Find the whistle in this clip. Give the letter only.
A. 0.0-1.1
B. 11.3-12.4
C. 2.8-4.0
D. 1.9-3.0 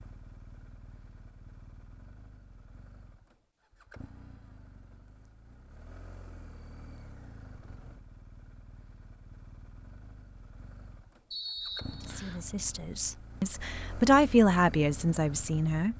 B.